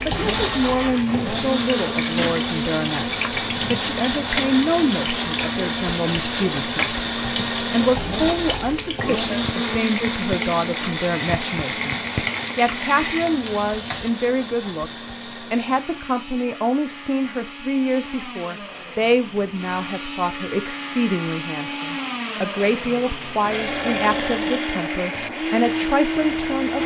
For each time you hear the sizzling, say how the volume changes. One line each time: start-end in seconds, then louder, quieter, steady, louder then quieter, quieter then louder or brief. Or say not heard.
0.0-14.2 steady.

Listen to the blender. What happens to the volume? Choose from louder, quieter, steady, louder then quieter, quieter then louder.
quieter then louder.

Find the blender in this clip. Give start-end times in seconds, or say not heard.
0.0-26.8.